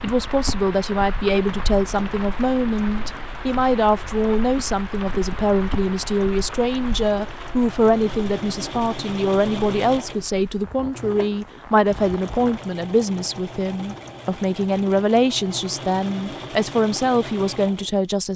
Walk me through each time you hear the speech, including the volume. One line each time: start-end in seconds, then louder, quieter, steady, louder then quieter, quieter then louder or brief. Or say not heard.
0.0-18.3 steady.